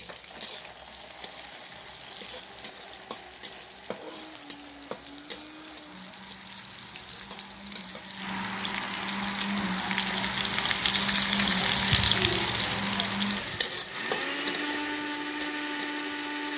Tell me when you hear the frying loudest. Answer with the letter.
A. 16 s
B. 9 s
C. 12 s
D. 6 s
C.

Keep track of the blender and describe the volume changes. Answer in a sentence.
The volume of the blender goes up.